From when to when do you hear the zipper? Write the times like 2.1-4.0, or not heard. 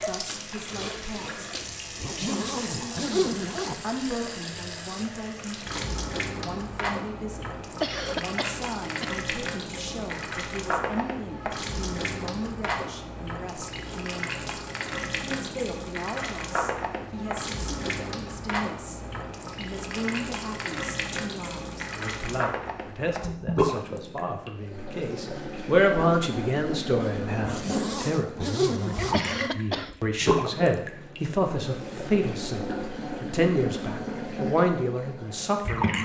2.0-3.8, 27.4-29.2.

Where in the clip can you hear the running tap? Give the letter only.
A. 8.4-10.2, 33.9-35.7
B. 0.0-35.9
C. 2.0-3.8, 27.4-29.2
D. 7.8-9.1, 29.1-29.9
B.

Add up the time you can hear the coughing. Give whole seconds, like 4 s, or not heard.
2 s.